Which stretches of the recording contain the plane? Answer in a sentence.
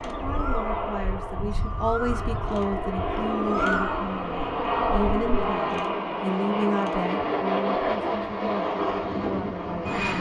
The plane can be heard from 0.0 to 10.1 s.